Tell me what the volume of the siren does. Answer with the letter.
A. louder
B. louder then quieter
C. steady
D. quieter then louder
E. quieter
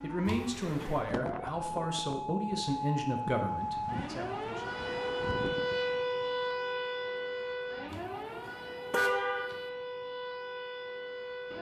B.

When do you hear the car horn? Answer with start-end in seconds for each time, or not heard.
0.2-1.1, 7.9-9.6.